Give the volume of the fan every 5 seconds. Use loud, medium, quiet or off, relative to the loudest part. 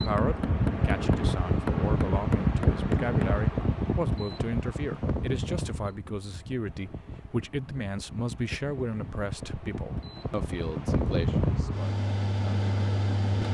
loud, medium, loud.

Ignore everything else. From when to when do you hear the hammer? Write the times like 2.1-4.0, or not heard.
0.0-3.8.